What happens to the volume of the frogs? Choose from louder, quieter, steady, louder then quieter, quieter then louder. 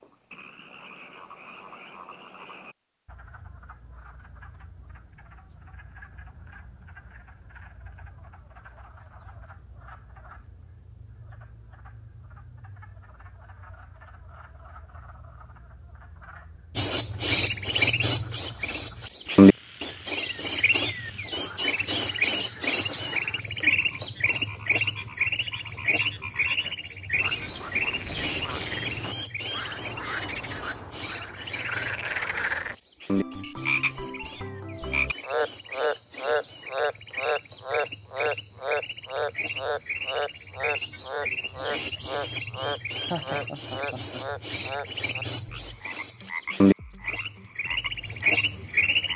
louder.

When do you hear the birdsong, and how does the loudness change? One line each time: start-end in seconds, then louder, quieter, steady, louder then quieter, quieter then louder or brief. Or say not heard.
16.8-49.1 quieter then louder.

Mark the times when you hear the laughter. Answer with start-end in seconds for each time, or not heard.
43.0-44.2.